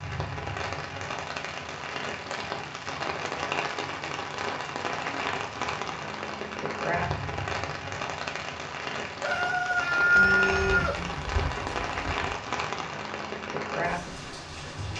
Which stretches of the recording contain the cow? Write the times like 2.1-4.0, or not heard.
10.2-12.3.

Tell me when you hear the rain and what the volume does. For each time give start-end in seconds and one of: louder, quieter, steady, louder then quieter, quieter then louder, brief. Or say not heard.
0.0-14.9 steady.